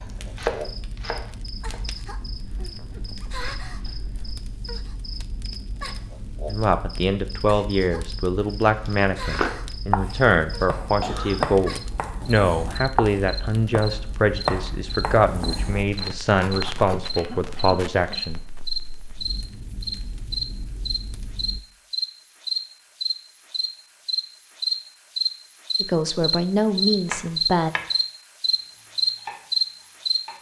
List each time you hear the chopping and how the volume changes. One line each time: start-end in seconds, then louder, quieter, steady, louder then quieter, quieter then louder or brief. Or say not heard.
0.0-1.9 brief
8.8-17.0 quieter
27.1-27.9 brief
28.8-30.3 brief.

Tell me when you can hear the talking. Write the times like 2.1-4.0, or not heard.
6.5-18.4, 25.8-27.7.